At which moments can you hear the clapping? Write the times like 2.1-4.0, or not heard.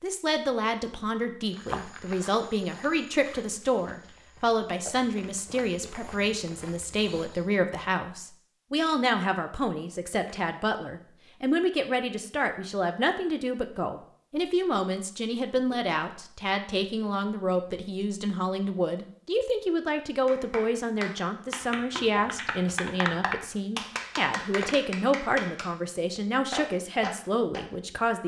20.2-25.7, 26.5-27.6.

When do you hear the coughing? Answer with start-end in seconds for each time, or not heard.
not heard.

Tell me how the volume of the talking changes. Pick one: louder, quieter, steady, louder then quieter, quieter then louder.
steady.